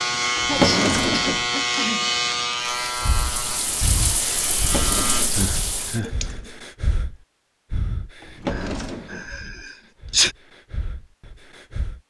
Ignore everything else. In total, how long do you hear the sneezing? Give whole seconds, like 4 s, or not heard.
4 s.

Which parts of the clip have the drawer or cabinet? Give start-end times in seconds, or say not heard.
0.3-1.4, 4.5-5.5, 8.2-9.3.